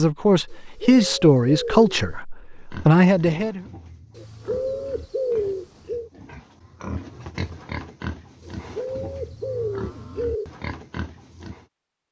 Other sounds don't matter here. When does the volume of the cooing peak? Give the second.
5 s.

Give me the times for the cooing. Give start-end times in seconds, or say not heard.
0.5-1.9, 4.2-6.1, 8.4-10.5.